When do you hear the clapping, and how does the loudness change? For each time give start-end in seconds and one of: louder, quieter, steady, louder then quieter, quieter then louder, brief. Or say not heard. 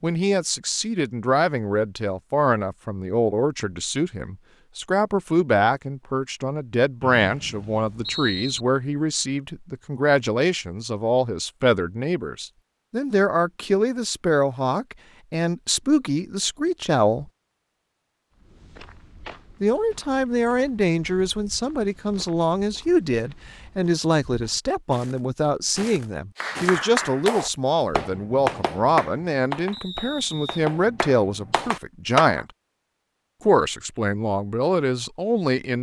26.4-32.4 quieter.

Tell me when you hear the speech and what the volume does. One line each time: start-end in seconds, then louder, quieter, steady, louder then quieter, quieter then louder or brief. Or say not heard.
0.0-17.2 steady
19.6-32.5 steady
33.5-35.7 brief.